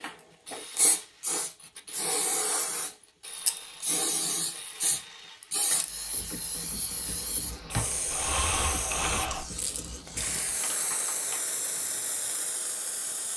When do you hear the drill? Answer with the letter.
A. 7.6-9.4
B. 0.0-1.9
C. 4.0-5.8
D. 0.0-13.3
A.